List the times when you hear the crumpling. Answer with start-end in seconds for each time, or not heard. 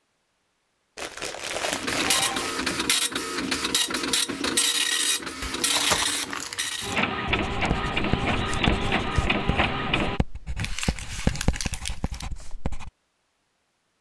0.9-2.9, 5.4-7.0, 10.6-12.2.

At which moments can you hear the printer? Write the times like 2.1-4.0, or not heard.
1.7-10.2.